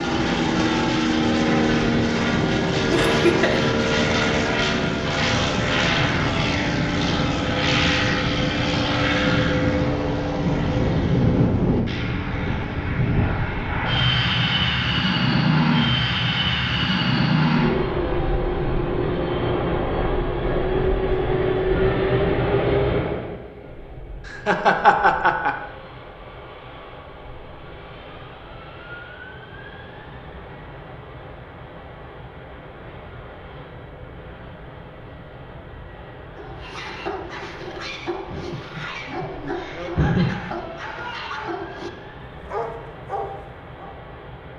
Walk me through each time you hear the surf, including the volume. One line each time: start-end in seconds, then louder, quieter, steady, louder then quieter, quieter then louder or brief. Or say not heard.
not heard.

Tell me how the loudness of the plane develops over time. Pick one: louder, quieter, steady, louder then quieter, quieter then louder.
quieter.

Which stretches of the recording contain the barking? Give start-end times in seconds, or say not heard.
36.4-44.0.